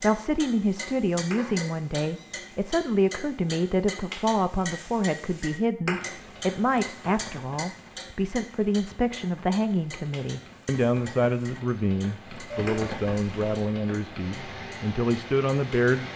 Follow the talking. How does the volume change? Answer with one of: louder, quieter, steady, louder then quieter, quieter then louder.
steady.